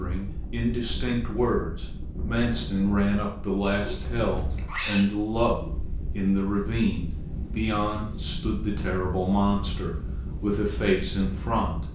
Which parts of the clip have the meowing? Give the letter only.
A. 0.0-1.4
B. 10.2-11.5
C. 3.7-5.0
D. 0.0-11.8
C.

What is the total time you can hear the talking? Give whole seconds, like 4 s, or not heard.
12 s.